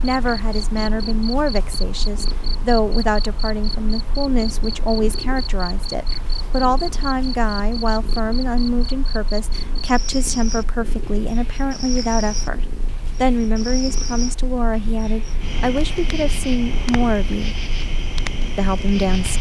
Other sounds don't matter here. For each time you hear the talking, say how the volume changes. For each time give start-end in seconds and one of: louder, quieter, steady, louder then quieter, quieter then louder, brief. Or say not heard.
0.0-17.6 steady
18.6-19.3 brief.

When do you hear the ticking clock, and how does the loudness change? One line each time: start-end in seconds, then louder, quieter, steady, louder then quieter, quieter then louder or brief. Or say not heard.
not heard.